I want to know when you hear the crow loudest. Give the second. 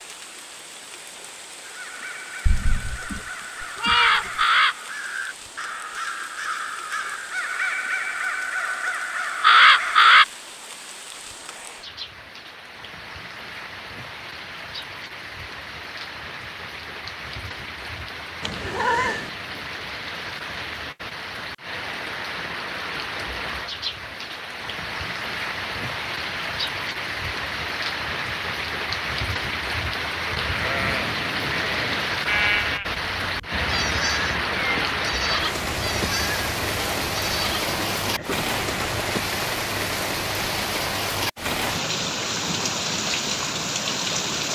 10 s.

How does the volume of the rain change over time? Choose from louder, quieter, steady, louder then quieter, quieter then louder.
louder.